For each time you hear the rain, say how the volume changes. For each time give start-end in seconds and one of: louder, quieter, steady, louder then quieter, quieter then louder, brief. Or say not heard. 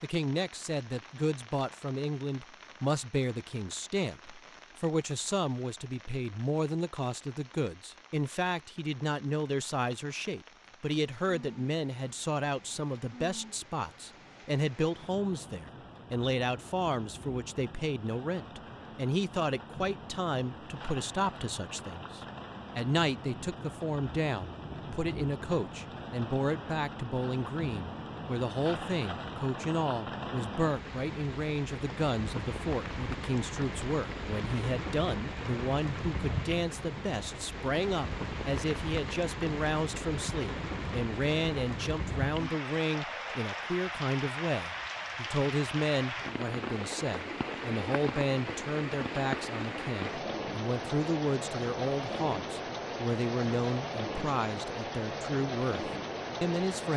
0.0-56.9 louder.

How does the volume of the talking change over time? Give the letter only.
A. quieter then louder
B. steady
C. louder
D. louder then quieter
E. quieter
B.